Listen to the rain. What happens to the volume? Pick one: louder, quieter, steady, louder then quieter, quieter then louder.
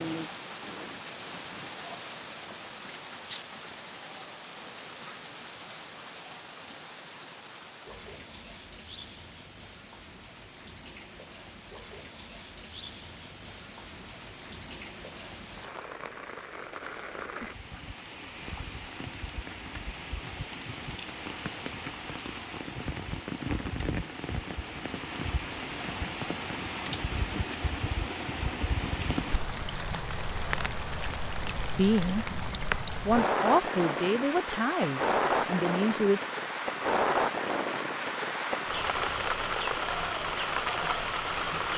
louder.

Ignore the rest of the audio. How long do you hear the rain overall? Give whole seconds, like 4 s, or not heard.
42 s.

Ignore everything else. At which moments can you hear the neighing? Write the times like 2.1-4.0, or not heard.
not heard.